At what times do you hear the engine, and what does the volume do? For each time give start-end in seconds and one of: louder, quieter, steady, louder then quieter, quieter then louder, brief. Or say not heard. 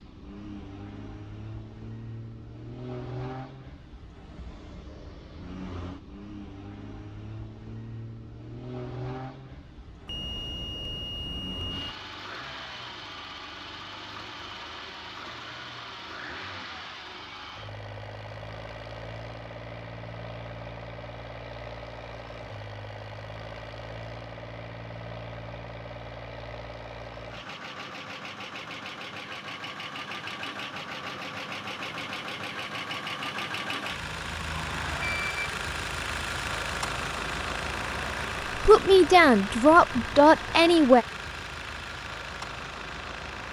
0.0-43.4 louder.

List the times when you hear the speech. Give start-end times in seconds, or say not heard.
38.5-41.0.